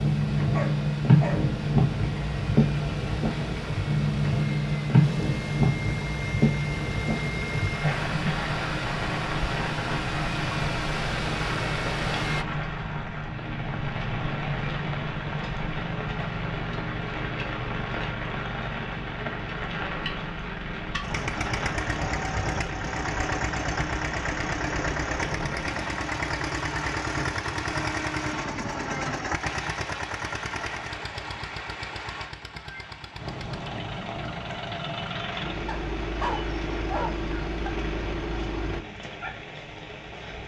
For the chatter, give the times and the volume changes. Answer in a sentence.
The chatter can't be heard in this clip.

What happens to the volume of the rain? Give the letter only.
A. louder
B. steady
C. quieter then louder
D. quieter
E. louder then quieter
D.